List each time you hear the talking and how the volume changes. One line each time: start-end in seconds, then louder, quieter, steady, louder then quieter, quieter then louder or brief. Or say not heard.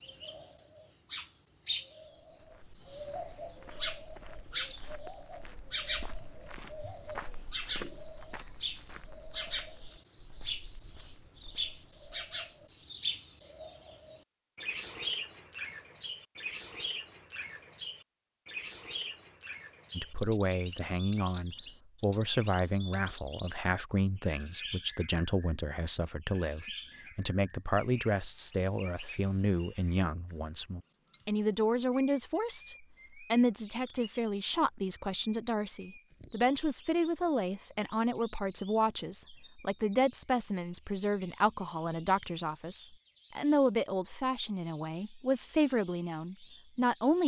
19.9-47.2 steady.